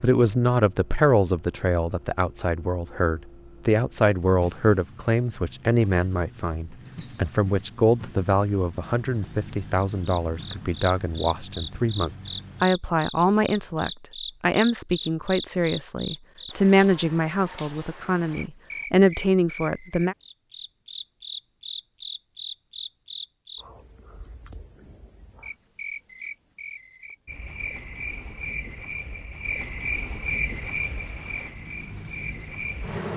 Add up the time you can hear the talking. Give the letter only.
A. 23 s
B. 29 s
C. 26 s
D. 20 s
D.